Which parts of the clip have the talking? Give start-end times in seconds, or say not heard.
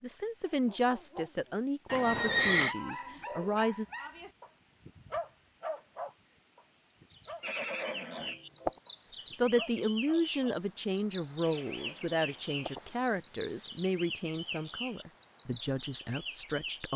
0.0-3.9, 9.3-16.9.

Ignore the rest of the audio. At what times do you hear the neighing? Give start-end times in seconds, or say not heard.
1.9-2.8, 7.4-8.7, 11.4-12.8.